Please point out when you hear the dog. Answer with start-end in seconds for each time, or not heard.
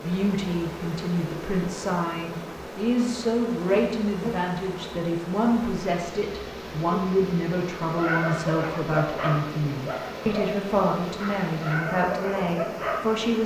7.9-13.2.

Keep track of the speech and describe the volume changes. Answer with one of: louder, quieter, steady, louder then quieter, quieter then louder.
steady.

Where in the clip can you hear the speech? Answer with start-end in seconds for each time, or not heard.
0.0-13.4.